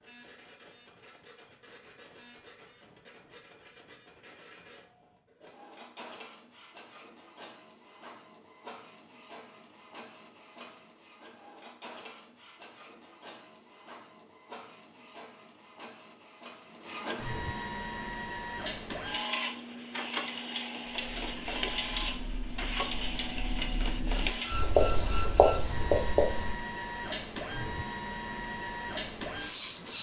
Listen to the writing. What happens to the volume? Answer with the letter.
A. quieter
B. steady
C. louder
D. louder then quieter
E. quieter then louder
C.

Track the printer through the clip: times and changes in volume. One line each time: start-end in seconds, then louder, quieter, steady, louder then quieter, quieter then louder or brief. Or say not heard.
0.0-29.9 louder.